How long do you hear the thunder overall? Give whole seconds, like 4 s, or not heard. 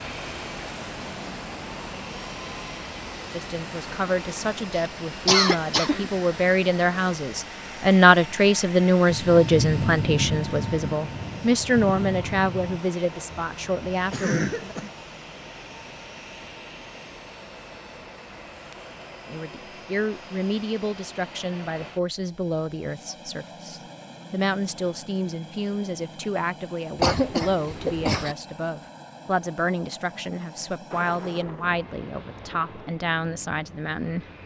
6 s.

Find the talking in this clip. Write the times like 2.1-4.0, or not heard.
3.3-14.8, 19.2-34.2.